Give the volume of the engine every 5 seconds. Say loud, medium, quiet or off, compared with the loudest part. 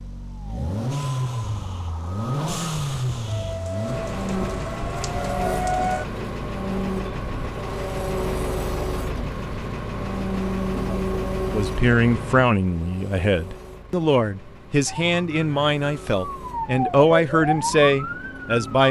loud, loud, loud, quiet.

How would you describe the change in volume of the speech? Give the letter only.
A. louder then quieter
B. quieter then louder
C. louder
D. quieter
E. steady
E.